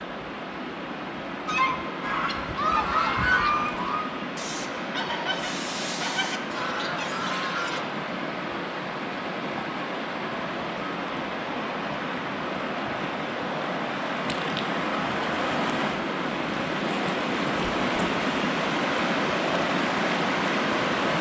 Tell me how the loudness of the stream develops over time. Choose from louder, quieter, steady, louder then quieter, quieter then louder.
louder.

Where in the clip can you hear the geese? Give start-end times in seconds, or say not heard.
1.4-7.8.